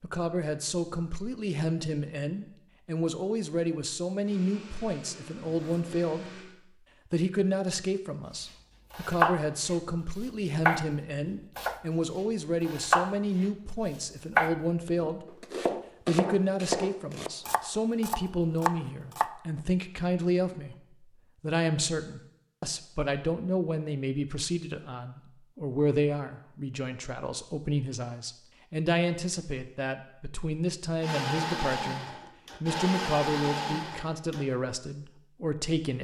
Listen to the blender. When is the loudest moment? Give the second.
33 s.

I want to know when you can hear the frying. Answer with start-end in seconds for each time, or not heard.
not heard.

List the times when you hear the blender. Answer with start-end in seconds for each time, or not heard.
4.2-6.5, 31.0-34.5.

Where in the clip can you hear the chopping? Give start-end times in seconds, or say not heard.
8.9-9.8, 10.7-11.8, 12.6-13.4, 14.3-19.3.